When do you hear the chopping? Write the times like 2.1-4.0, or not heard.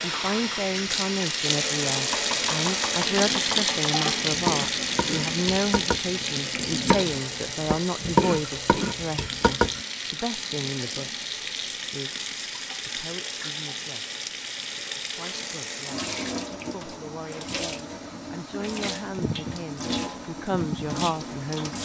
2.0-9.8.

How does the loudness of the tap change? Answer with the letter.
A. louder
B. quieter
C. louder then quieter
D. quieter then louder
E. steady
B.